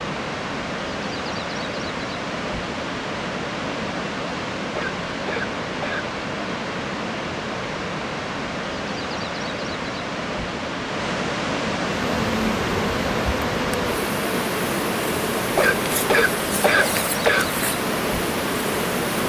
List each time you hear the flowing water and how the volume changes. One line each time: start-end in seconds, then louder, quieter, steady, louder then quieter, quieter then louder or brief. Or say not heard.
0.0-19.2 steady.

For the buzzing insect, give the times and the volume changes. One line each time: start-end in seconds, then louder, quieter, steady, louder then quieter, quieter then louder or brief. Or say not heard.
11.9-19.2 steady.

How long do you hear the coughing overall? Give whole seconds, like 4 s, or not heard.
3 s.